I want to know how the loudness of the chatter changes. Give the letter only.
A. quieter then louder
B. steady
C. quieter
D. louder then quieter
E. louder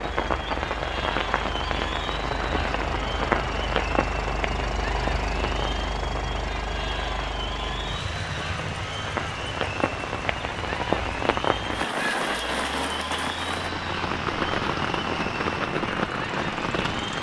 B.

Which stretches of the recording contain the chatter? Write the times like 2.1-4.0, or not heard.
0.1-17.1.